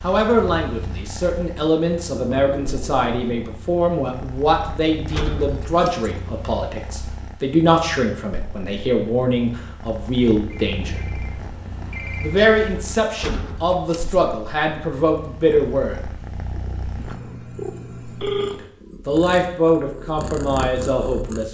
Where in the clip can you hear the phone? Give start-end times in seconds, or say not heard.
2.1-3.5, 10.5-12.4, 16.9-18.6.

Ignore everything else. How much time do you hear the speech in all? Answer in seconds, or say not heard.
18 s.